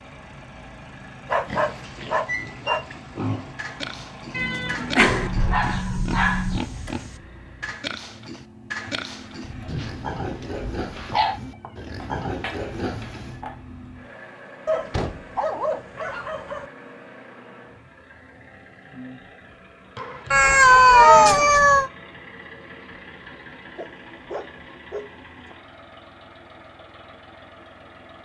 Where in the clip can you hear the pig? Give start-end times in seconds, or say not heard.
1.4-13.4.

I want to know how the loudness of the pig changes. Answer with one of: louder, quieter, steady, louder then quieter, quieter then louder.
steady.